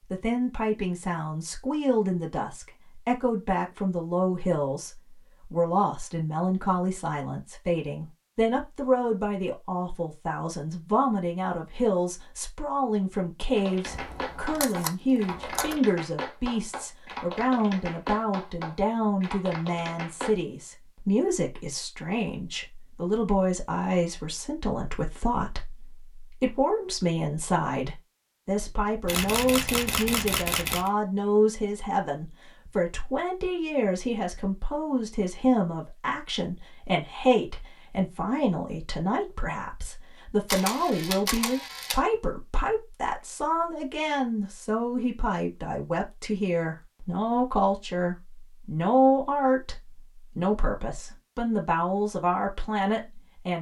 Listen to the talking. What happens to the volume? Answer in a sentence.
The volume of the talking stays about the same.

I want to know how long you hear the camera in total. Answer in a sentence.
You can hear the camera for 5 seconds altogether.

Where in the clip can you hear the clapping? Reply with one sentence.
You can hear the clapping from 13.6 to 20.4 s.